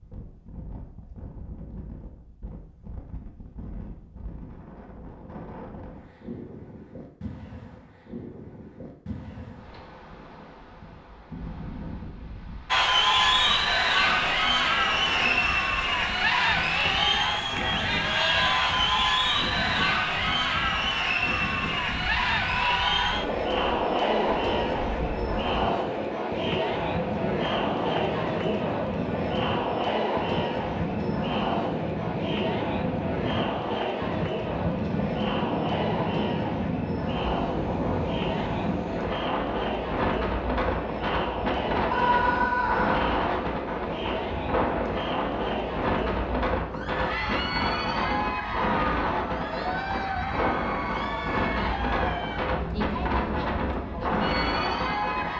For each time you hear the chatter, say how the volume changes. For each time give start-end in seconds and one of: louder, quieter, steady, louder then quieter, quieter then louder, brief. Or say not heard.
12.7-55.3 quieter.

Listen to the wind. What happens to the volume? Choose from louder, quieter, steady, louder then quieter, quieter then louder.
louder.